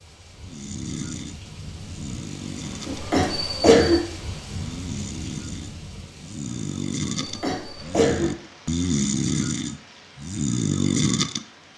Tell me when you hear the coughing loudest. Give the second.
4 s.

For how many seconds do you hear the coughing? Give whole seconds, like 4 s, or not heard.
2 s.